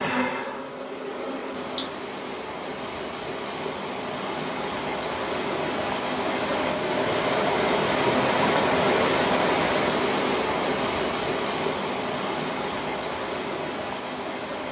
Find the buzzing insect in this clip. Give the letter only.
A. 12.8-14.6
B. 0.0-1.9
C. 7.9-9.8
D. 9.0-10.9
B.